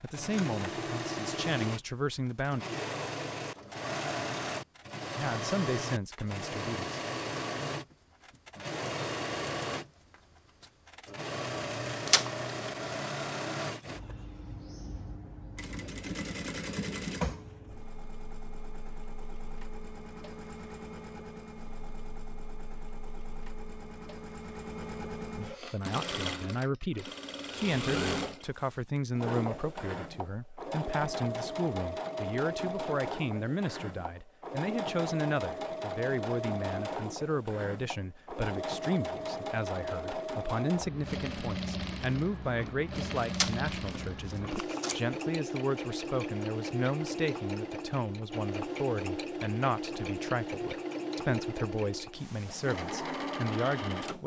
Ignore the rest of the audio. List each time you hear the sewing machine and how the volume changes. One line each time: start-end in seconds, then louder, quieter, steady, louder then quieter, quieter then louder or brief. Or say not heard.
0.0-54.2 steady.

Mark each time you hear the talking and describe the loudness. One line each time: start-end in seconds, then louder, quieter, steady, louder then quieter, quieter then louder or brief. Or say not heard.
0.0-2.6 brief
5.2-7.0 brief
25.5-54.2 steady.